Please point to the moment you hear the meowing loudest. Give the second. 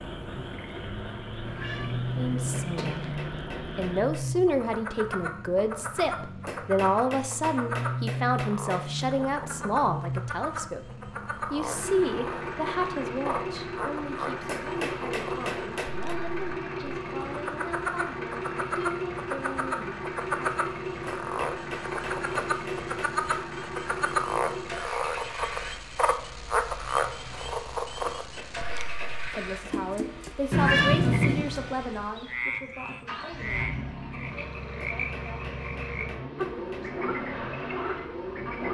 31 s.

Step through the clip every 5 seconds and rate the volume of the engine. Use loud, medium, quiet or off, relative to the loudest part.
loud, loud, loud, loud, loud, medium, medium, loud.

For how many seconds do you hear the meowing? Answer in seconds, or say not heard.
3 s.